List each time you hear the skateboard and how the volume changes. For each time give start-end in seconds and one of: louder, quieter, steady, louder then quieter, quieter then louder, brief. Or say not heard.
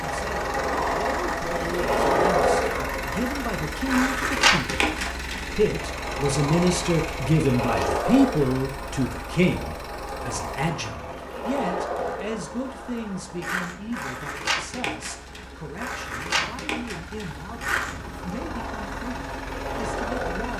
0.0-20.5 quieter.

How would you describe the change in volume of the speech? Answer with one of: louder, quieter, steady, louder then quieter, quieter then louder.
louder then quieter.